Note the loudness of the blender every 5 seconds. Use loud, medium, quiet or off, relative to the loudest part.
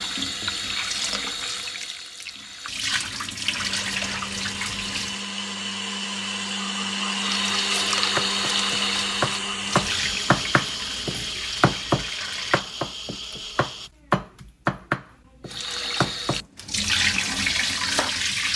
medium, loud, medium, off.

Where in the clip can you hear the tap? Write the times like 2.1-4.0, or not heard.
0.0-5.2, 7.1-12.6, 15.4-18.5.